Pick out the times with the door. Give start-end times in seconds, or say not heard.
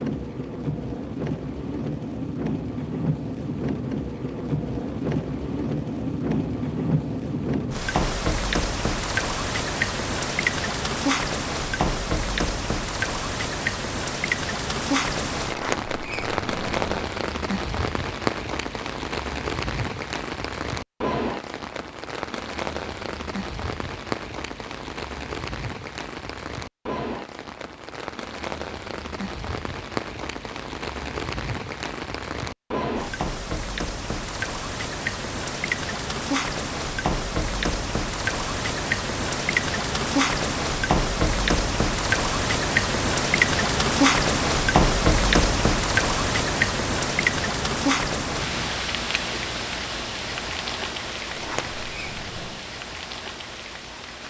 15.4-16.9, 51.3-52.6.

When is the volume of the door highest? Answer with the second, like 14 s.
16 s.